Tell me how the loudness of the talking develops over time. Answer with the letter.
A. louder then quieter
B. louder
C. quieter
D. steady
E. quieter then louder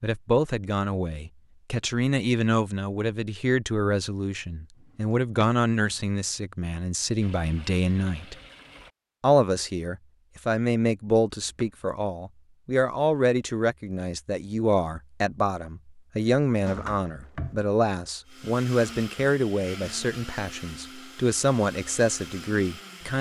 D.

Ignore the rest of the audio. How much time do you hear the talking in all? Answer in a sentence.
You can hear the talking for 22 seconds altogether.